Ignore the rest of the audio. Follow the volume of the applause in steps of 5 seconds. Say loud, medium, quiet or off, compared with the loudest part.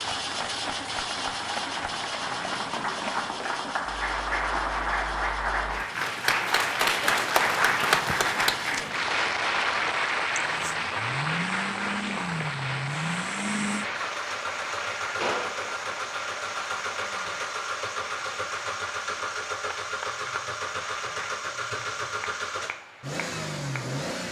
medium, loud, medium, quiet, quiet.